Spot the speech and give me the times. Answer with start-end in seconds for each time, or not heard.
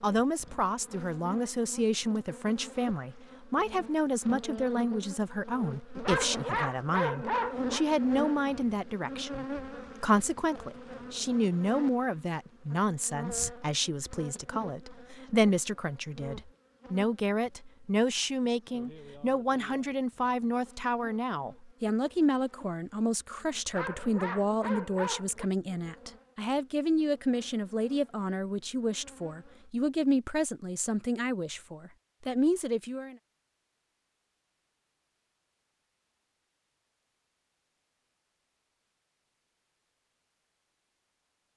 0.0-33.1.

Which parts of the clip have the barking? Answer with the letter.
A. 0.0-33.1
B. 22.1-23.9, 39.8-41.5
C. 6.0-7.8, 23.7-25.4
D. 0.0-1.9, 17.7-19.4
C.